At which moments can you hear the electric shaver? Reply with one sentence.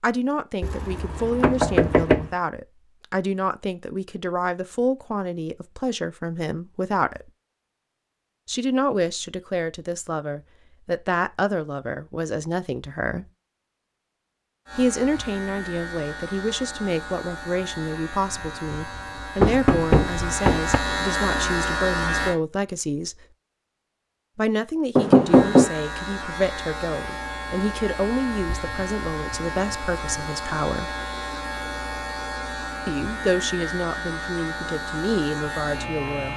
You can hear the electric shaver from 14.7 to 22.4 s and from 25.2 to 36.3 s.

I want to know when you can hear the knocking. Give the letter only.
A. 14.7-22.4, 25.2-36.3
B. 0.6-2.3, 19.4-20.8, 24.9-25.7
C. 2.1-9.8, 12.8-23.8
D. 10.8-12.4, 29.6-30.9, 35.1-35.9
B.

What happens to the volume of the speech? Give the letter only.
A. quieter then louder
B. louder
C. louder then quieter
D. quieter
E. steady
E.